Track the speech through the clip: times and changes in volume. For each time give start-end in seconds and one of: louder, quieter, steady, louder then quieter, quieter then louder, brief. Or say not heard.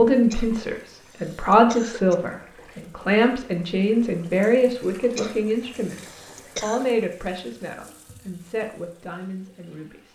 0.0-10.1 quieter.